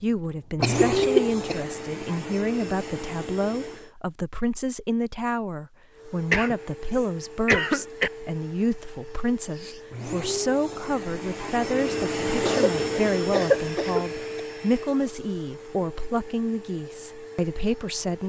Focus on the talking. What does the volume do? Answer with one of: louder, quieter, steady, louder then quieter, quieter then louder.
steady.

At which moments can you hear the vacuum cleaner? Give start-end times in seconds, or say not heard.
0.6-3.9, 5.9-18.2.